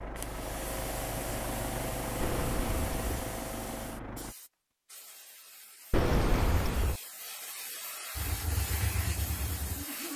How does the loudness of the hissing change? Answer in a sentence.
The loudness of the hissing goes down, then up.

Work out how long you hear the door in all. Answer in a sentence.
You can hear the door for 2 seconds altogether.